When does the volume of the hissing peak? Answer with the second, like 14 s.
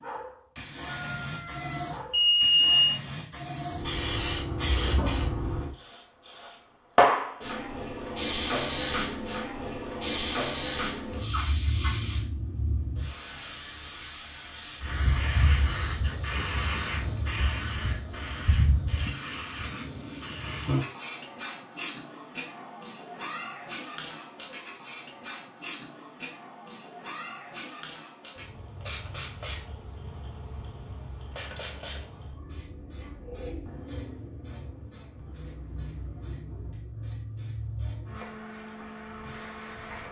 7 s.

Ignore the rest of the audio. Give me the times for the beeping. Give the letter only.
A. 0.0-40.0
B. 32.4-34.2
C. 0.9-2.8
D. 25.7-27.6
C.